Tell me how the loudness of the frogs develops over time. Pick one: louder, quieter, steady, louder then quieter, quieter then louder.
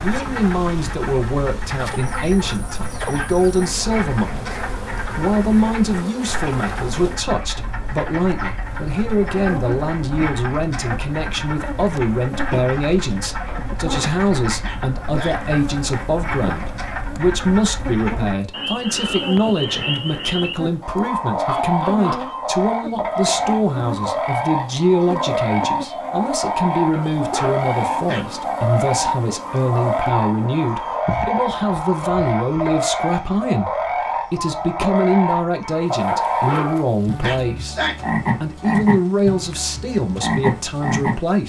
louder.